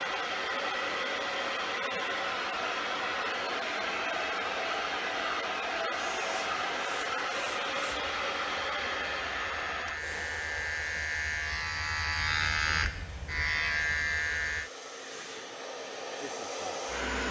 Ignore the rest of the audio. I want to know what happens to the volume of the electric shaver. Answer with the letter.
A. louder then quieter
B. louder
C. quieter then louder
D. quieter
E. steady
B.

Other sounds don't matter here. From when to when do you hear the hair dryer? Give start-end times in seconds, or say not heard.
0.0-17.2.